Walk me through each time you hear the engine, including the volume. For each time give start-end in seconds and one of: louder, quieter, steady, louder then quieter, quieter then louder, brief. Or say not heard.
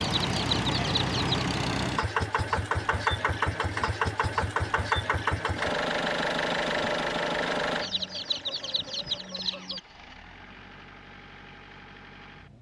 0.0-12.5 quieter.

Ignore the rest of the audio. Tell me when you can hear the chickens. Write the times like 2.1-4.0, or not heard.
0.0-1.4, 7.8-9.8.